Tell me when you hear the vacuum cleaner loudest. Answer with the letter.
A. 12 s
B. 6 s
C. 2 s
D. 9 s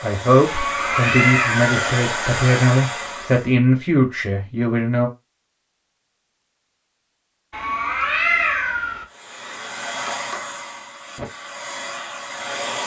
C.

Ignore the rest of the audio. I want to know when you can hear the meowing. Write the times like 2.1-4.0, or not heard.
0.5-1.8, 7.5-9.1.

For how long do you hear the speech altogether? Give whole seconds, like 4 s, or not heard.
5 s.